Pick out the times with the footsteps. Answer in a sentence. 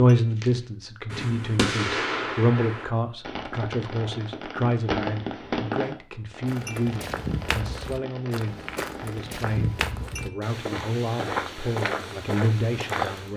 The footsteps can be heard from 6.5 to 13.3 s.